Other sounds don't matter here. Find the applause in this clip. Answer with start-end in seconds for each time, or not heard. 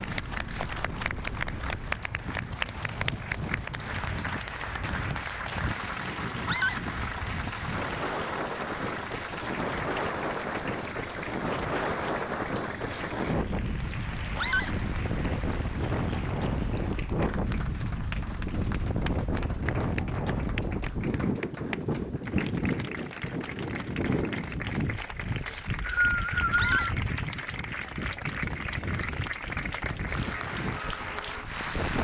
0.0-31.9.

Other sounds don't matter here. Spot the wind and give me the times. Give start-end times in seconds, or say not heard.
0.0-31.9.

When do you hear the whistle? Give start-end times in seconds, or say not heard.
25.4-26.8.